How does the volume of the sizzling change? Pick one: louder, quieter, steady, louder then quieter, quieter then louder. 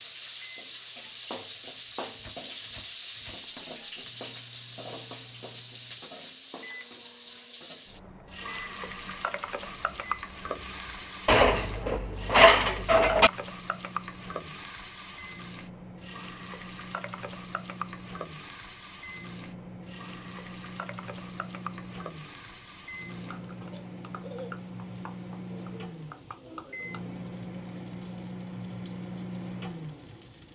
quieter.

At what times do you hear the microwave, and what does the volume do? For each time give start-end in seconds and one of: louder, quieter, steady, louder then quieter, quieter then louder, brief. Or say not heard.
0.0-30.5 louder.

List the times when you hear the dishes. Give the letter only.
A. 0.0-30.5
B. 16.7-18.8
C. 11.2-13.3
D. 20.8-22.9
C.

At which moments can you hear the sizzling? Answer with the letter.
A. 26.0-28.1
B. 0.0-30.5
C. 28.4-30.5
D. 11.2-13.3
B.